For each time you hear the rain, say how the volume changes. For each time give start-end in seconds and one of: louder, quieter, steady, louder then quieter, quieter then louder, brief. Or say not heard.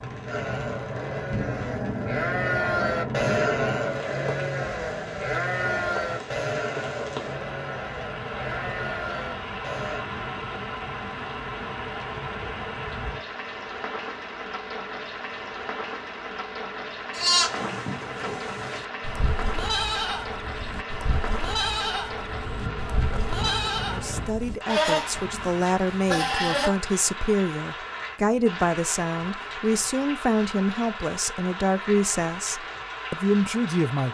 0.0-34.0 steady.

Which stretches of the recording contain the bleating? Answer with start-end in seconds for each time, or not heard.
0.2-10.1, 17.1-26.7.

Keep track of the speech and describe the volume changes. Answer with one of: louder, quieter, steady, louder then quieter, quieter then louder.
steady.